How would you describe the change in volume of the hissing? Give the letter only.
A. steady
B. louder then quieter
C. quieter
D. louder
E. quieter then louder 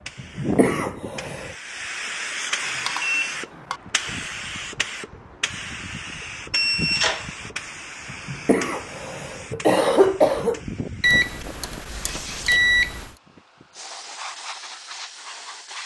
C.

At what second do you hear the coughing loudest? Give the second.
10 s.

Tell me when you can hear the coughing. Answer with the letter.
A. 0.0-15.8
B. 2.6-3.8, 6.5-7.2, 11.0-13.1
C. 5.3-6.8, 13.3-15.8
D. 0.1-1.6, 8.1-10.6
D.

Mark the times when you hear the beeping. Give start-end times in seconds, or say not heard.
2.6-3.8, 6.5-7.2, 11.0-13.1.